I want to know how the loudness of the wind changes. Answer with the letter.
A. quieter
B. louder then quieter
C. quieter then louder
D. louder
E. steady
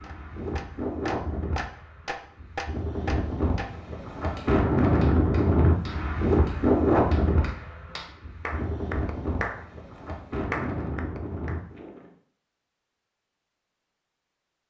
B.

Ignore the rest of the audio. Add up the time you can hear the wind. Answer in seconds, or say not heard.
12 s.